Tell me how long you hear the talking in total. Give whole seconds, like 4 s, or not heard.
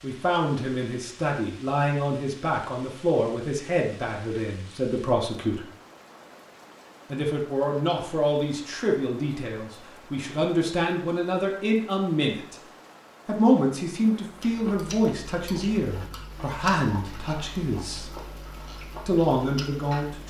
17 s.